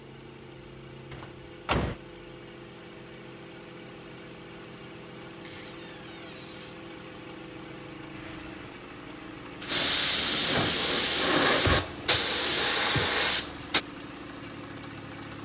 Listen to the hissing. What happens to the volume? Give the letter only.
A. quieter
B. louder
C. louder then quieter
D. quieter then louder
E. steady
B.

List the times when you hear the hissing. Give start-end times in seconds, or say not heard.
8.1-13.8.